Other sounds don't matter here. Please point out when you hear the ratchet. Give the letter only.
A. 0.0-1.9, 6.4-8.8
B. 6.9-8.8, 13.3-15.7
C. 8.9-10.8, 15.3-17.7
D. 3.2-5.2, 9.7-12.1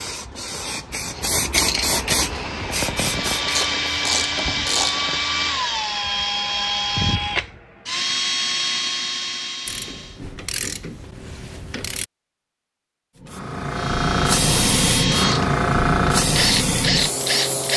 D.